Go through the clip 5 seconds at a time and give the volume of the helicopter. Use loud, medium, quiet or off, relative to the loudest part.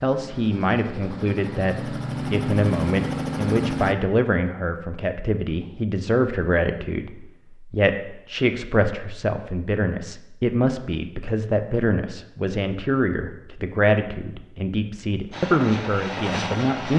loud, off, off, loud.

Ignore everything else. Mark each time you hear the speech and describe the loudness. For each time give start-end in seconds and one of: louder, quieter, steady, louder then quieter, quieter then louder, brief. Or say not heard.
0.0-16.9 steady.